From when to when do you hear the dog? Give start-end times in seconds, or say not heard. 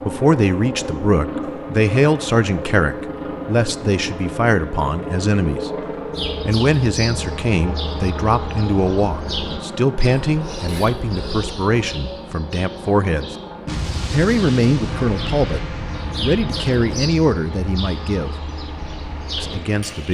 not heard.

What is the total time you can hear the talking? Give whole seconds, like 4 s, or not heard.
17 s.